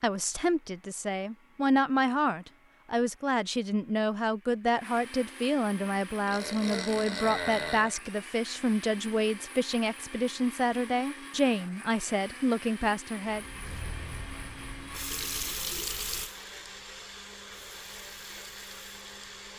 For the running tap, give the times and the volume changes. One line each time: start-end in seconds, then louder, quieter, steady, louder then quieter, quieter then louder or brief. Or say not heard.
13.2-19.5 louder then quieter.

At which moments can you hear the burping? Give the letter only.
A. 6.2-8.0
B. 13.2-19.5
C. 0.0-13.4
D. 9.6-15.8
A.